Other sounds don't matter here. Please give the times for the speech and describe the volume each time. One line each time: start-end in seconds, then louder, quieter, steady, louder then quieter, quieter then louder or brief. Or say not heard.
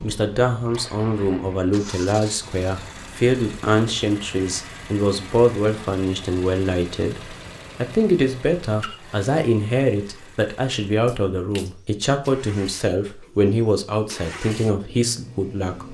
0.0-15.8 steady.